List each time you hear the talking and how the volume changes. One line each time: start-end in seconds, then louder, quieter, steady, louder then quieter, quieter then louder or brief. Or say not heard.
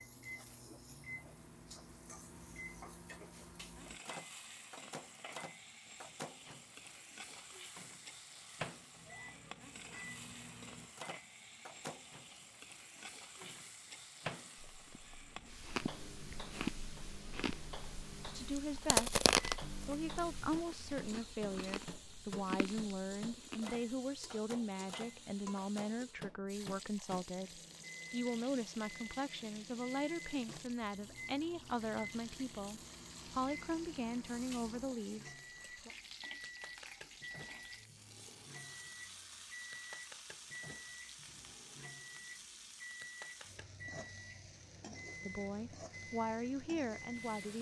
18.2-35.9 steady
45.2-47.5 brief.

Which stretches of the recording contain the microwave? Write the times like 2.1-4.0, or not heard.
0.0-47.5.